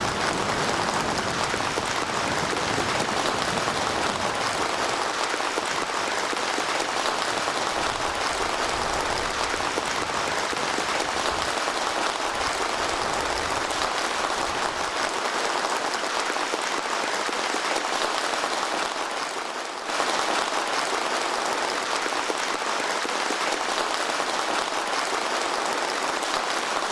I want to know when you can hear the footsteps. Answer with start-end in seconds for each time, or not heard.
not heard.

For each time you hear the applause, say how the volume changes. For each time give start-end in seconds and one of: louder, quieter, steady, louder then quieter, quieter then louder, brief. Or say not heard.
0.0-26.8 steady.